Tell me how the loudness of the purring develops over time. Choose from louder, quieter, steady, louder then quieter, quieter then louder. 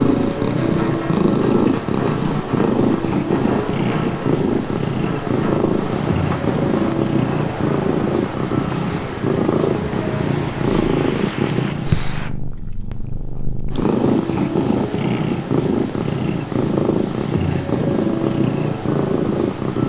steady.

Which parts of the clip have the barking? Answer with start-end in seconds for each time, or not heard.
not heard.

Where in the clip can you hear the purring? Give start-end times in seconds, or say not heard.
0.0-19.8.